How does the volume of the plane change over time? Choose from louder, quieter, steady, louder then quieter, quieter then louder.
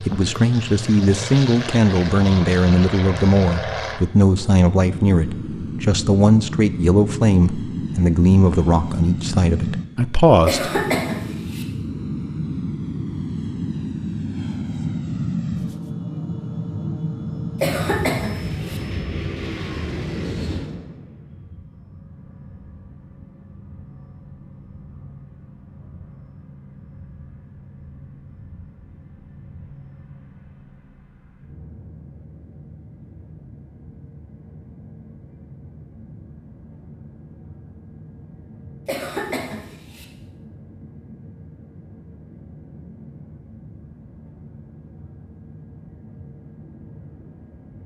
quieter.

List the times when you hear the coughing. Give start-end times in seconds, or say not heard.
10.4-11.7, 17.6-18.8, 38.9-40.0.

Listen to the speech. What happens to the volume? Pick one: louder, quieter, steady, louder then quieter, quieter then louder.
steady.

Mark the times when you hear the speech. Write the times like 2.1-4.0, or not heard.
0.0-10.8.